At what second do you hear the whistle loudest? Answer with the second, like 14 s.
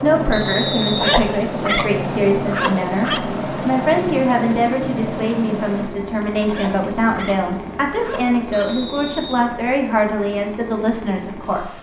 1 s.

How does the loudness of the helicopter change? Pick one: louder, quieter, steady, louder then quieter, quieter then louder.
quieter.